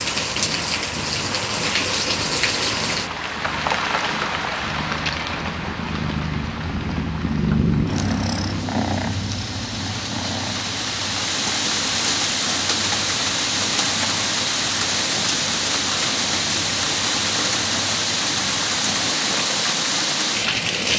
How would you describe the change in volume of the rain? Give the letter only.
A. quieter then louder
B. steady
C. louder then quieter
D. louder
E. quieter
A.